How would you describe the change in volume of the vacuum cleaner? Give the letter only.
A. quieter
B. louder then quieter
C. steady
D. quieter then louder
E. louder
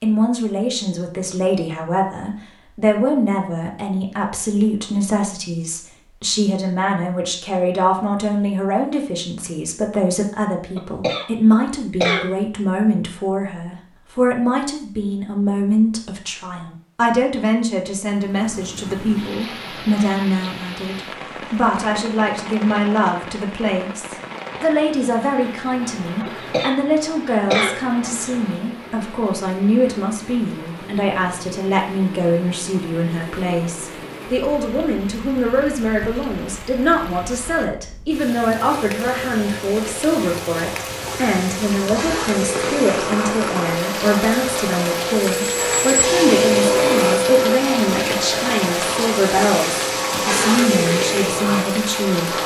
E.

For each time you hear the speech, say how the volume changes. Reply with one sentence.
You can hear the speech from 0.0 to 52.4 s, at a steady volume.